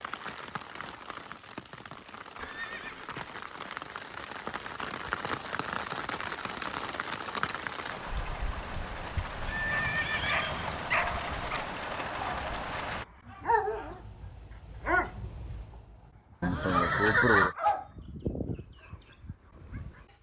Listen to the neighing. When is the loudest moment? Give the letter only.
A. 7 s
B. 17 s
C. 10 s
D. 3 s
B.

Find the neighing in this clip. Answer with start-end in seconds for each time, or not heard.
2.4-3.4, 9.4-10.7, 16.4-17.6.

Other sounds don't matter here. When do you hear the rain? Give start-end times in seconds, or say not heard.
0.0-13.1.